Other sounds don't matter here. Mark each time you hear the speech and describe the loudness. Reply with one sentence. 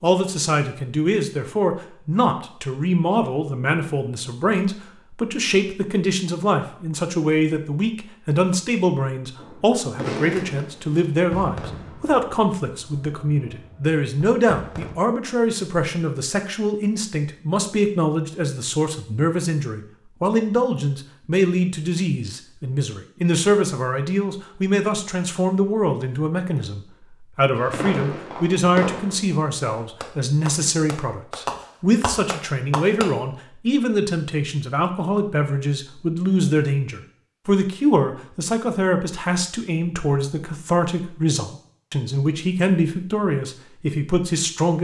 You can hear the speech from 0.0 to 44.7 s, at a steady volume.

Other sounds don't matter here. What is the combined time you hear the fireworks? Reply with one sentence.
The fireworks can be heard for 11 seconds in total.